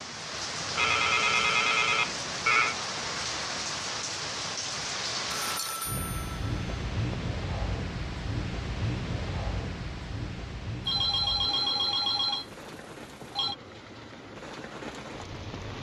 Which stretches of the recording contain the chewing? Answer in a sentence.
The chewing can't be heard in this clip.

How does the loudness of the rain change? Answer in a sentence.
The loudness of the rain goes down.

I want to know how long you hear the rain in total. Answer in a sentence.
You can hear the rain for 16 seconds altogether.